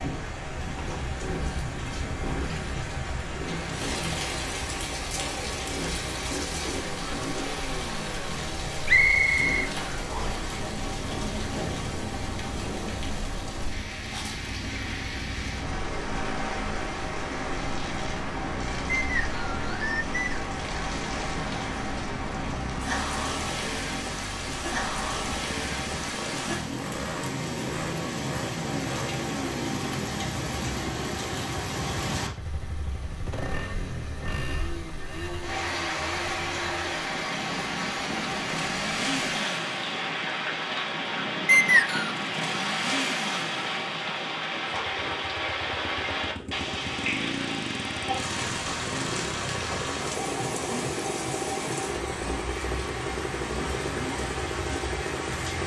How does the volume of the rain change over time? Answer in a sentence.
The loudness of the rain stays about the same.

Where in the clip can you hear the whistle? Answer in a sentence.
You can hear the whistle from 8.8 to 10.4 s, from 18.9 to 20.4 s and from 41.5 to 42.1 s.